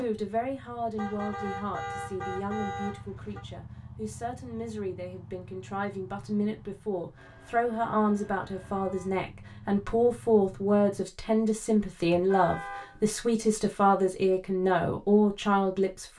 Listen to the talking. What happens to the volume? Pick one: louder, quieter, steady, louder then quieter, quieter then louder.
louder.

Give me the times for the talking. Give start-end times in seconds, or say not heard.
0.0-16.1.